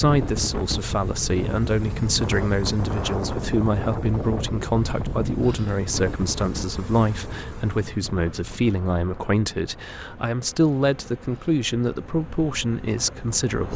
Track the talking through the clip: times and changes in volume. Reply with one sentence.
You can hear the talking from 0.0 to 13.7 s, at a steady volume.